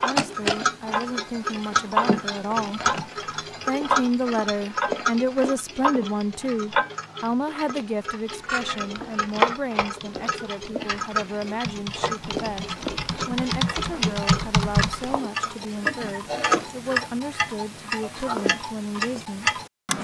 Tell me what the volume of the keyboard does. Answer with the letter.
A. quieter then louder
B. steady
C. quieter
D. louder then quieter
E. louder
E.